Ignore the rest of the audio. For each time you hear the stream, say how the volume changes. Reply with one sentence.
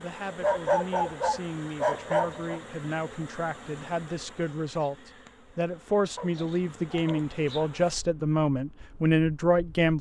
You can't hear the stream here.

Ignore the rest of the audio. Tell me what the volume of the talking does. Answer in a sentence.
The volume of the talking goes up.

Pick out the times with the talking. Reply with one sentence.
You can hear the talking from 0.0 to 9.9 s.